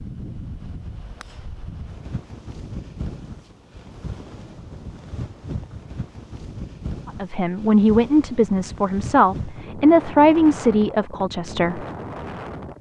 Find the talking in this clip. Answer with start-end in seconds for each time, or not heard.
7.0-11.8.